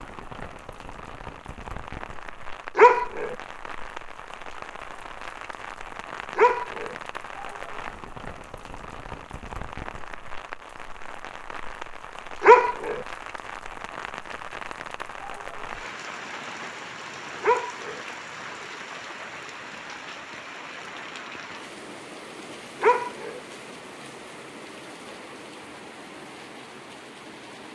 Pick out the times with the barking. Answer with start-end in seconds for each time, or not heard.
2.8-3.4, 6.3-7.0, 12.4-13.0, 17.4-18.0, 22.8-23.4.